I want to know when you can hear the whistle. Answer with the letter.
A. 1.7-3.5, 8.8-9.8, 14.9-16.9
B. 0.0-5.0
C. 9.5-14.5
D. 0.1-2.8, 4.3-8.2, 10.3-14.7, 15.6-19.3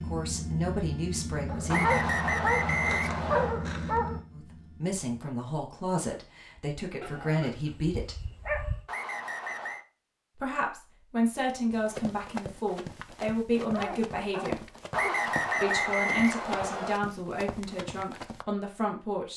A.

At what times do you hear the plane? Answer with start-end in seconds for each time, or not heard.
0.0-5.0.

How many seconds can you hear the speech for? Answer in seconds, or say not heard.
15 s.